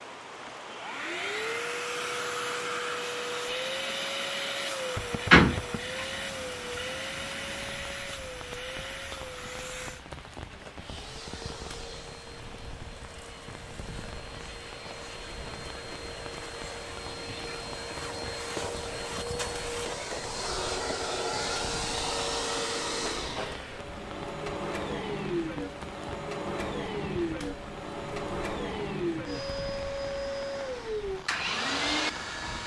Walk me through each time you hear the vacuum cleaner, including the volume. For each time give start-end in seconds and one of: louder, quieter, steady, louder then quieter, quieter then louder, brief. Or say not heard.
0.0-32.6 quieter then louder.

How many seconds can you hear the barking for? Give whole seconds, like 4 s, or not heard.
not heard.